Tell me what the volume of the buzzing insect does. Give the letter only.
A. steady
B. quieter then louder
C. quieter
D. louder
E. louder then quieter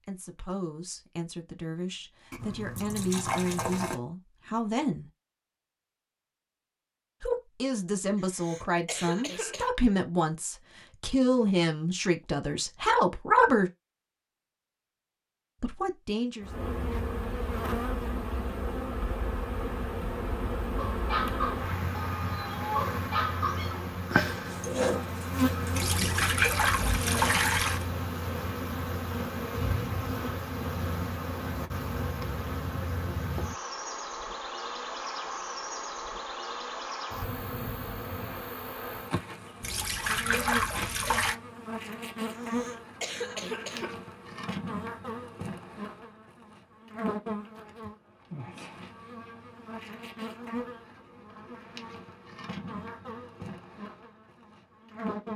C.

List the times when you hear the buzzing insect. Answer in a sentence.
The buzzing insect can be heard from 16.4 to 55.3 s.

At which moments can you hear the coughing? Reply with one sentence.
You can hear the coughing from 8.2 to 9.7 s and from 42.3 to 44.0 s.